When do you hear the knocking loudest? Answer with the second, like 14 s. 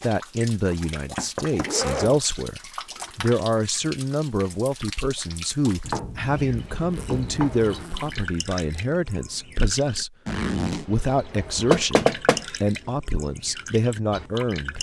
12 s.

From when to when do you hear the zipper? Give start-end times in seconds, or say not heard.
1.6-2.2, 6.9-8.3, 10.2-10.8.